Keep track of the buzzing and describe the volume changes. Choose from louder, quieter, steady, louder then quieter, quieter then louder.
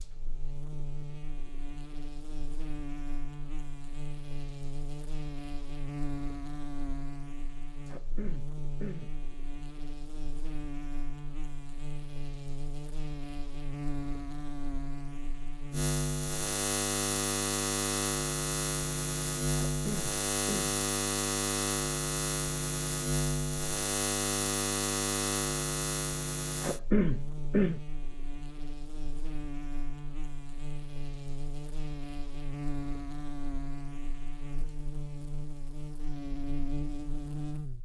louder then quieter.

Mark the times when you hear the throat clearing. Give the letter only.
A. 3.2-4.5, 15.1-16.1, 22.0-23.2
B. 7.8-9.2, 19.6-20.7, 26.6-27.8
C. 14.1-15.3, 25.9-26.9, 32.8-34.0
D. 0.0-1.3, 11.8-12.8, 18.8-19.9
B.